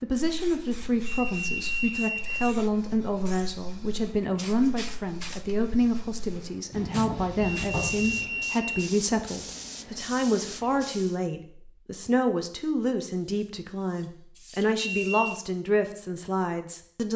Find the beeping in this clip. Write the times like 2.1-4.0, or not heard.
1.1-2.6, 7.4-9.0, 14.8-15.4.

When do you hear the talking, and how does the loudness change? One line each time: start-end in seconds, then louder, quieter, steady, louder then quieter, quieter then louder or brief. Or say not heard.
0.0-17.1 steady.